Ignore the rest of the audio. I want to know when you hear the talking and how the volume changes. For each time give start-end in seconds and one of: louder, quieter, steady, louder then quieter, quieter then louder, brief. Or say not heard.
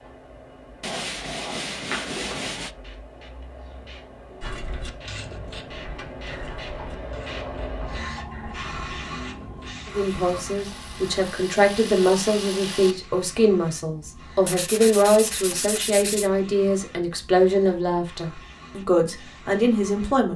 9.8-20.3 steady.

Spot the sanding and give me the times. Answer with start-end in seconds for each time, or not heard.
0.8-2.7, 14.4-16.3.